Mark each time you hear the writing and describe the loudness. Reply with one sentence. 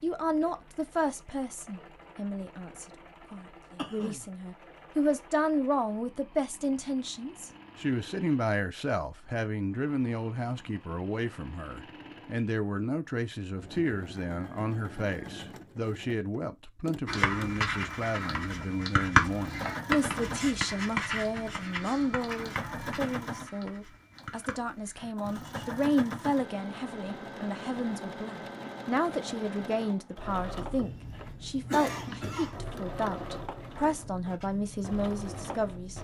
You can hear the writing from 17.1 to 25.8 s, getting louder then quieter.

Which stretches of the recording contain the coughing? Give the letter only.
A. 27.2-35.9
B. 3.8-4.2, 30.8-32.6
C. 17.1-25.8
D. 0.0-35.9
B.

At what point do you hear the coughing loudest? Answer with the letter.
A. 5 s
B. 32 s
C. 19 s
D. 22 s
B.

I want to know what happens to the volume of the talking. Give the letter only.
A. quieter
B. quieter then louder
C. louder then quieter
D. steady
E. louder
D.